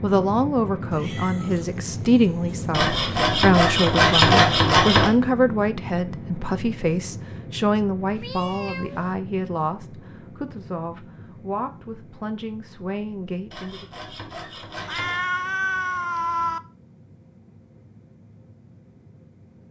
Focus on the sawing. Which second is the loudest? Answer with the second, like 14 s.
4 s.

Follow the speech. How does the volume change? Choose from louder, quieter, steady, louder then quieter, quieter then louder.
quieter.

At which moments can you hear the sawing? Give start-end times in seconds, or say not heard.
2.7-5.1, 13.5-15.2.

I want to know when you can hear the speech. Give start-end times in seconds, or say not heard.
0.0-13.8.